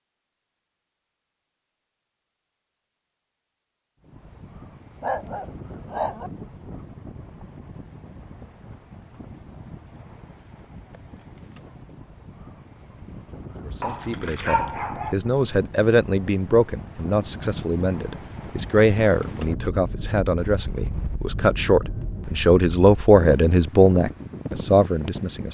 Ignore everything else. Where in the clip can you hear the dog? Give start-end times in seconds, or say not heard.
5.0-6.3, 13.6-15.2.